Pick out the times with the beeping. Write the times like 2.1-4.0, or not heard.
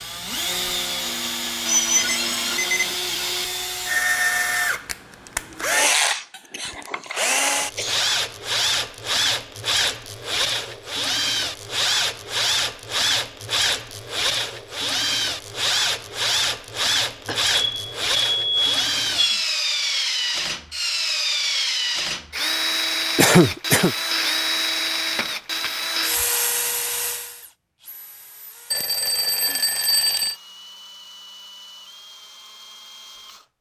1.9-3.0, 17.5-19.4, 28.7-30.4.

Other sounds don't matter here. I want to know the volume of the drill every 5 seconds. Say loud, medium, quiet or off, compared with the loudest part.
loud, loud, loud, loud, loud, medium, quiet.